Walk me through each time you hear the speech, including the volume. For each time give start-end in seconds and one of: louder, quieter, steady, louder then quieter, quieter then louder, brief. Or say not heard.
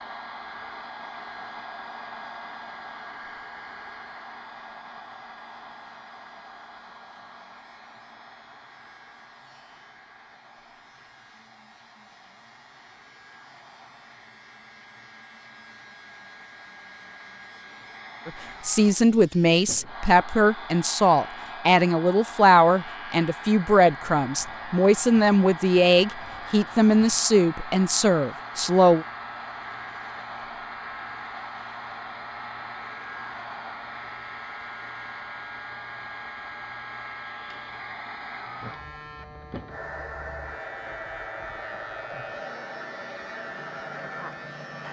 18.2-29.1 steady.